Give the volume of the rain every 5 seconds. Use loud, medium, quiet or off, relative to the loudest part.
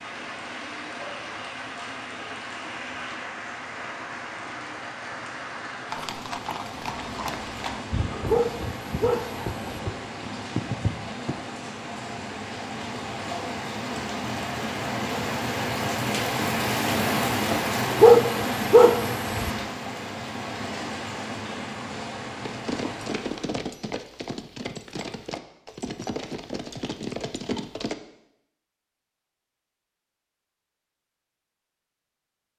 medium, medium, medium, loud, medium, off, off.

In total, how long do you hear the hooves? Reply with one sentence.
The hooves can be heard for 11 seconds in total.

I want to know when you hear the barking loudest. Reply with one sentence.
The loudest moment of the barking is at 18 seconds.